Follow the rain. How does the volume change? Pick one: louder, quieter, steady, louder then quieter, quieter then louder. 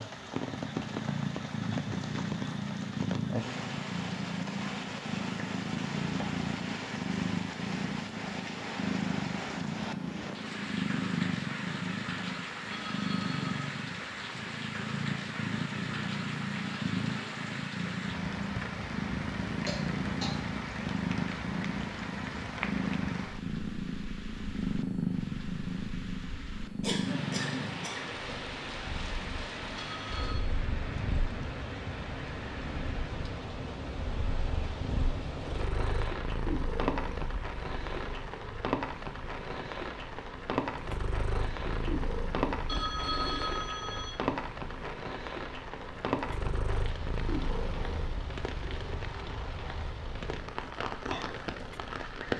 steady.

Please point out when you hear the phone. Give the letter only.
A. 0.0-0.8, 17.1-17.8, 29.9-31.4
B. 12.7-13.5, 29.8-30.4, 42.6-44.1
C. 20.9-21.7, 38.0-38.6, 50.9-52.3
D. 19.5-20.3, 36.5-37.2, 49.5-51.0
B.